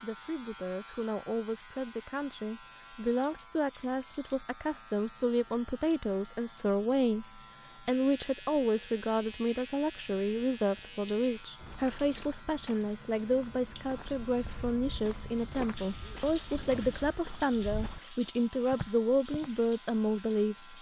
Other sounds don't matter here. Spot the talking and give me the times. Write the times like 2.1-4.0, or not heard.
0.0-20.7.